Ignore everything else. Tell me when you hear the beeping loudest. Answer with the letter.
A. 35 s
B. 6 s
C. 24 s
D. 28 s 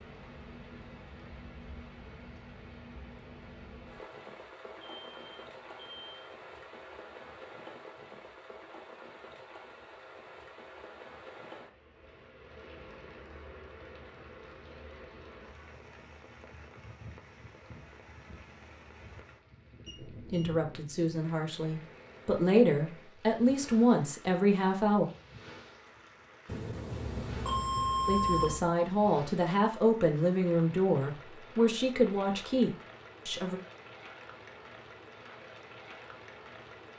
D.